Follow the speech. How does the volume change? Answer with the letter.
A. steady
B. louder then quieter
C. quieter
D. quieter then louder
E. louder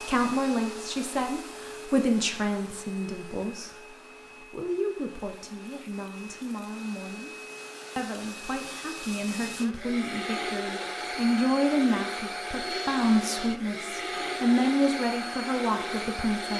D.